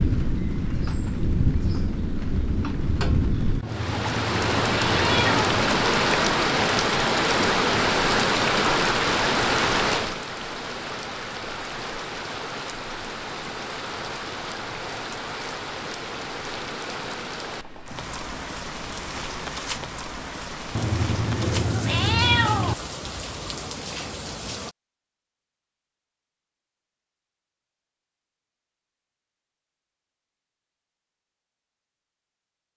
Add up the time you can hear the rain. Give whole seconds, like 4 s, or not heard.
25 s.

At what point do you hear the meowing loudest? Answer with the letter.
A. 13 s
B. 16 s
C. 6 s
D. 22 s
D.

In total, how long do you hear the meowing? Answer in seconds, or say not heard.
4 s.